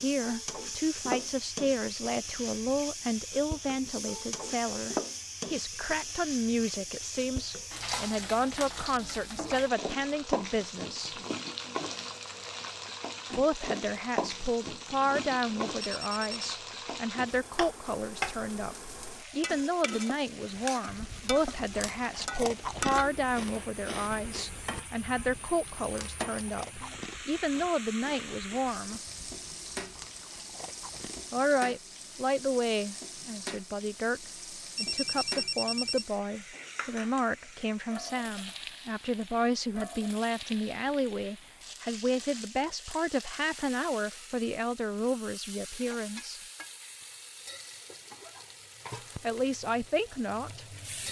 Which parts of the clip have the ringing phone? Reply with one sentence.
You can hear the ringing phone from 15.8 to 16.4 s and from 34.8 to 36.0 s.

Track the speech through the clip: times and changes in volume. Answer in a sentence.
You can hear the speech from 0.0 to 11.2 s, at a steady volume; from 13.3 to 29.0 s, at a steady volume; from 31.3 to 46.4 s, at a steady volume; and briefly from 49.2 to 51.0 s.